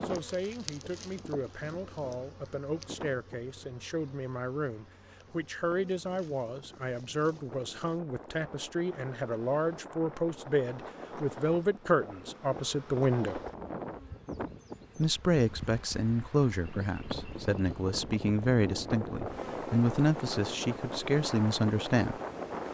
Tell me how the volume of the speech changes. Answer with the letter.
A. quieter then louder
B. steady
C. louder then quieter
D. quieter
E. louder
E.